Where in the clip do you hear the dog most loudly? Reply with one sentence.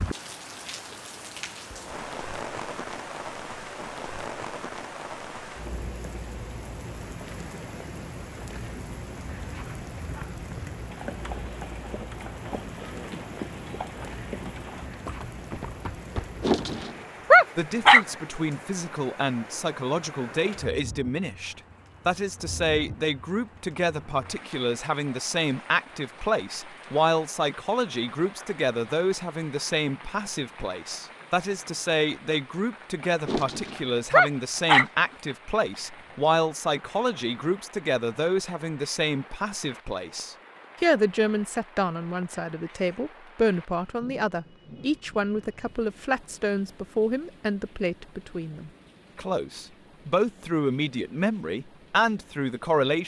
The loudest moment of the dog is at 17 seconds.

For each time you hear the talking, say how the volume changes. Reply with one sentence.
The talking can be heard from 17.6 to 53.0 s, at a steady volume.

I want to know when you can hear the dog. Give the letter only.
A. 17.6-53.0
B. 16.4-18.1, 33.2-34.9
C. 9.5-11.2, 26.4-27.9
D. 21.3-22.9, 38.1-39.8
B.